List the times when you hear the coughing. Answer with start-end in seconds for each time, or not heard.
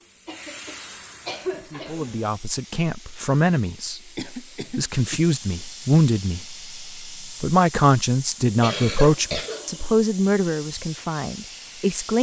0.2-2.2, 4.2-5.2, 8.6-10.0.